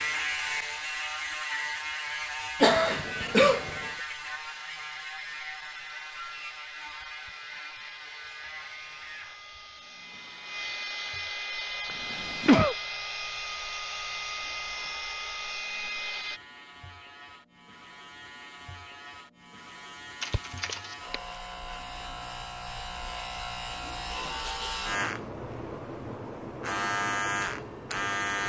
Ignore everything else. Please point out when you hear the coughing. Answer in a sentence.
The coughing can be heard from 2.6 to 3.9 s, from 11.8 to 12.8 s and from 20.2 to 21.2 s.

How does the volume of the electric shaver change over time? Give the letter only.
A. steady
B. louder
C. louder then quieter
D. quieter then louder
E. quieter
D.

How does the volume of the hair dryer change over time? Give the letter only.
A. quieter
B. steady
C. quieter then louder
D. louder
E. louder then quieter
D.